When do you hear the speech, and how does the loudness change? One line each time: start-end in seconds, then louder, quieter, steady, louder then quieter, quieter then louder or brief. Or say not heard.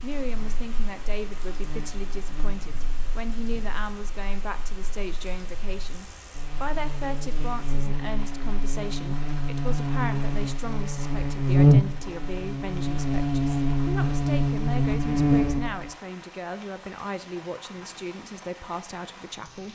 0.0-19.7 steady.